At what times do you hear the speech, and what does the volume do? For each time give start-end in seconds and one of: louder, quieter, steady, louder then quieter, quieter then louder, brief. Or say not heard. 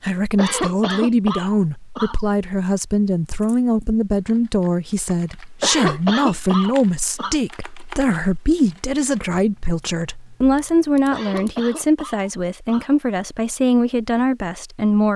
0.0-15.1 steady.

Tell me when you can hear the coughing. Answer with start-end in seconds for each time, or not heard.
0.3-2.2, 5.6-7.3, 11.1-12.9.